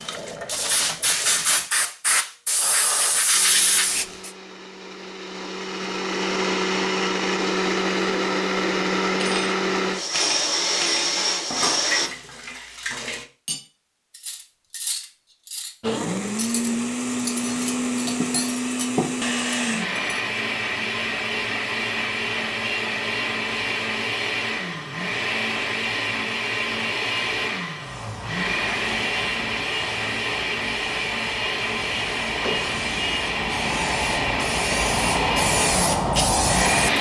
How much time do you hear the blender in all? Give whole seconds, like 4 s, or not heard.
30 s.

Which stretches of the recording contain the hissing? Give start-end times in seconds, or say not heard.
0.0-4.3, 27.8-36.9.